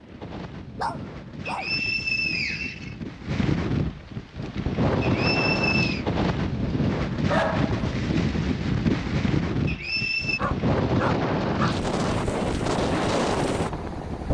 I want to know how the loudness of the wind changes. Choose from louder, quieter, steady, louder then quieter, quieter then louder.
louder.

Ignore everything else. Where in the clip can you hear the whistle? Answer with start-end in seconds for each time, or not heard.
1.4-3.0, 5.0-6.0, 9.7-10.4.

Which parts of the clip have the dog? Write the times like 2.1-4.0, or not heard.
0.8-1.8, 7.2-8.0, 10.3-11.8.